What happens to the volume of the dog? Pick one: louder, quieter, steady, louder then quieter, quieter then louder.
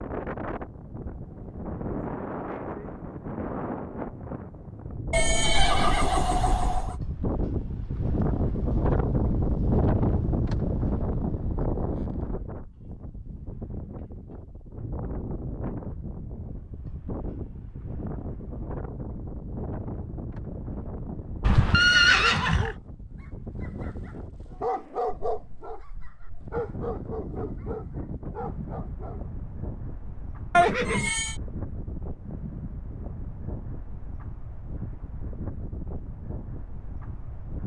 louder then quieter.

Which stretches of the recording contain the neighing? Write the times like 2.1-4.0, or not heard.
5.1-7.0, 21.4-22.8, 30.5-31.4.